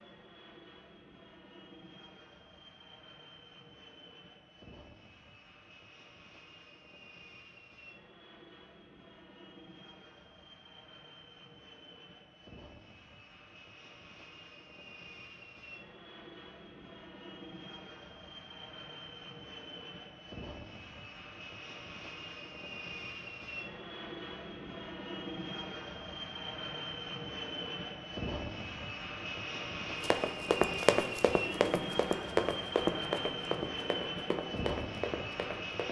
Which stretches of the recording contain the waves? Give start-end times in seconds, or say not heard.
not heard.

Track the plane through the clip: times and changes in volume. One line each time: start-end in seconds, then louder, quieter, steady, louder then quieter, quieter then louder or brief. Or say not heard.
0.0-35.8 louder.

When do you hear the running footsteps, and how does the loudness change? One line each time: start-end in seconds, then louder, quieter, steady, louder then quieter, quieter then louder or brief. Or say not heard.
30.0-35.8 quieter.